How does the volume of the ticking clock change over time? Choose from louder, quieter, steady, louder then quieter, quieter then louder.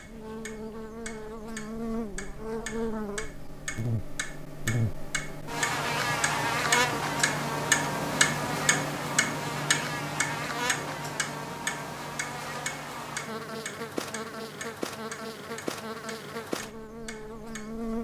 louder then quieter.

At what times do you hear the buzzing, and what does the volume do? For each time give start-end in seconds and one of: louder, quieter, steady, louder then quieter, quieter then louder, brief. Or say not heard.
0.0-17.9 louder then quieter.